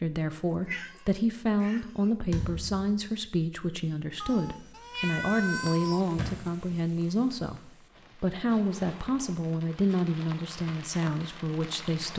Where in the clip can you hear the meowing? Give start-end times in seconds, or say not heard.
0.5-2.1, 4.2-6.0, 8.4-9.3.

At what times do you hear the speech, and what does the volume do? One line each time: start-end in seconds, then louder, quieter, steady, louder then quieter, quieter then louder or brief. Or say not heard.
0.0-12.1 steady.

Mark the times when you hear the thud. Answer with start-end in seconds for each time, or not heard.
2.3-2.9, 6.2-6.8.